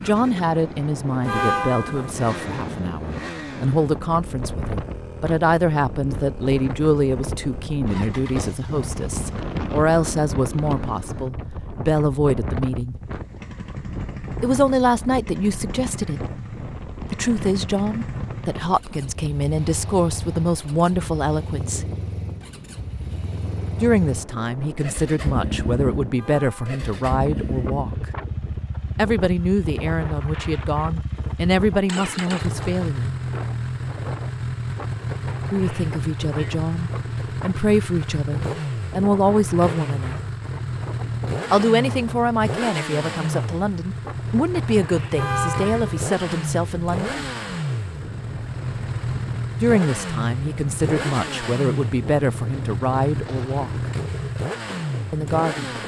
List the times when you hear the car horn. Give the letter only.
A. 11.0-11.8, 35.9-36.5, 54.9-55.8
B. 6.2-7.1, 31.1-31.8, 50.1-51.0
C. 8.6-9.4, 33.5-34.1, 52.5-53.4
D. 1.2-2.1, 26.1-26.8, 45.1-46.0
D.